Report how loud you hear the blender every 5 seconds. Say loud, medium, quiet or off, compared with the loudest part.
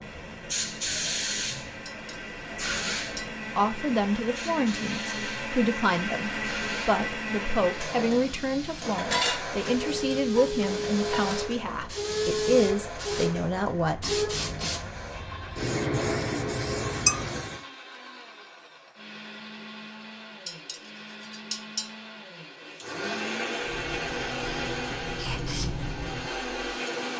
medium, loud, medium, medium, loud, loud.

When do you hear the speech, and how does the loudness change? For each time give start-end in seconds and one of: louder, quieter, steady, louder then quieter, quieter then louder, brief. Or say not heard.
3.5-14.2 steady.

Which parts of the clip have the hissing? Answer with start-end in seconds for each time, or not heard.
0.0-17.6, 23.6-27.1.